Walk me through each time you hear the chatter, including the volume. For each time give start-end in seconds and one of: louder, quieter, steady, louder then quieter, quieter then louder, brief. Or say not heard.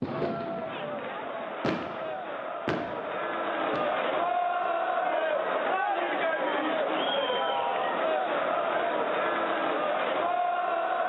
0.0-11.0 louder.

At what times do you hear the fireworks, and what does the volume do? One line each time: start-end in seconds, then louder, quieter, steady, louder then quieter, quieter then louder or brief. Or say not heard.
0.0-4.7 louder then quieter.